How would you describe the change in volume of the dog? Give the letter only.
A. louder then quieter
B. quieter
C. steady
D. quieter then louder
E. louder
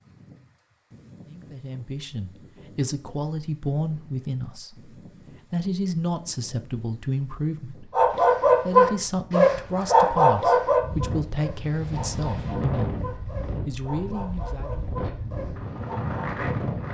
B.